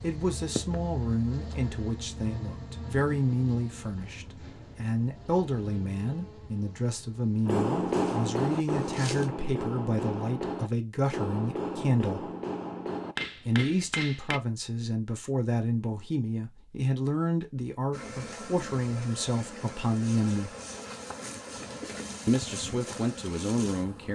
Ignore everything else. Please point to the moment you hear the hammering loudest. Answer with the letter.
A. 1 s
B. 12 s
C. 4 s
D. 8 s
D.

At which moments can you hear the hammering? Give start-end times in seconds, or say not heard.
7.5-14.4.